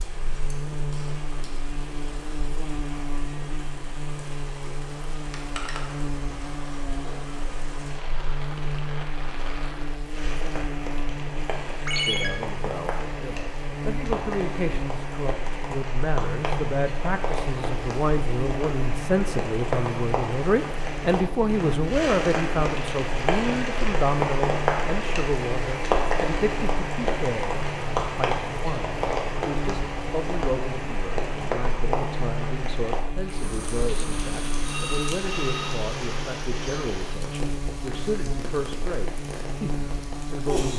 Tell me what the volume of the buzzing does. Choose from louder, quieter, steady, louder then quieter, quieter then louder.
steady.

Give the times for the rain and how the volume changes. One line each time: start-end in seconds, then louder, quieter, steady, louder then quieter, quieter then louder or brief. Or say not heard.
0.0-40.7 louder then quieter.